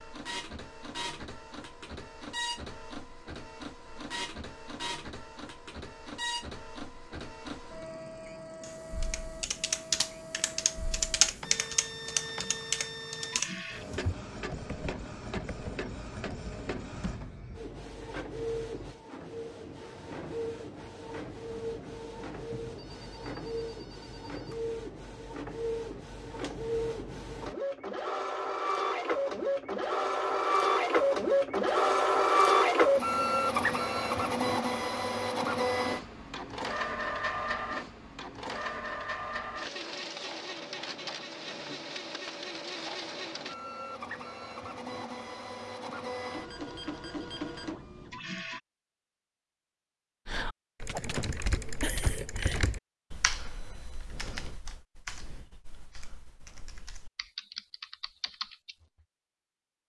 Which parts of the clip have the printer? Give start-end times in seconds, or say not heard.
0.0-48.6.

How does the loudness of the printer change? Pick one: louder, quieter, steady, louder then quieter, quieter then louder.
louder then quieter.